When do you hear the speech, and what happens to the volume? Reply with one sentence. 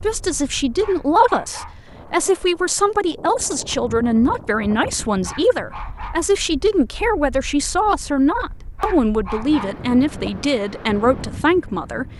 You can hear the speech from 0.0 to 12.1 s, at a steady volume.